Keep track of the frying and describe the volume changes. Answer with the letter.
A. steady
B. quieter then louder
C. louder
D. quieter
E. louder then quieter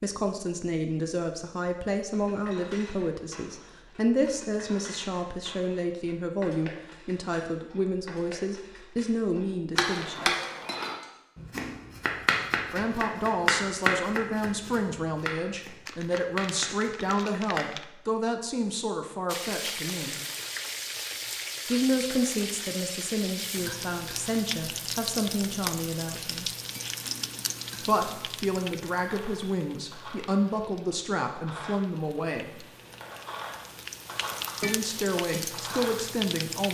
B.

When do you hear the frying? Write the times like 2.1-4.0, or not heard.
19.2-36.7.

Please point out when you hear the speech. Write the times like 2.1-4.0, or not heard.
0.0-10.3, 12.7-20.1, 21.6-26.5, 27.8-32.6, 34.6-36.7.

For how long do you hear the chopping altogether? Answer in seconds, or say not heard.
8 s.